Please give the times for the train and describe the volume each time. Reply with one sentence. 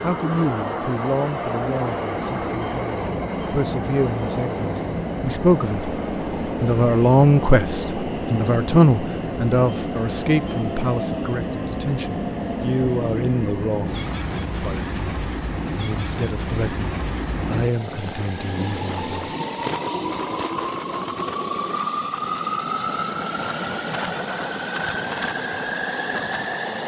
You can hear the train from 0.0 to 26.8 s, at a steady volume.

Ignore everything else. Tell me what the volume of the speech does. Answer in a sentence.
The loudness of the speech goes up, then down.